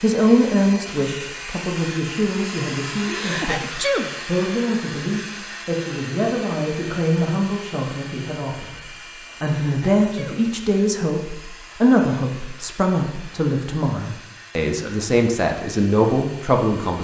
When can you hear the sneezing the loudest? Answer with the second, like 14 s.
4 s.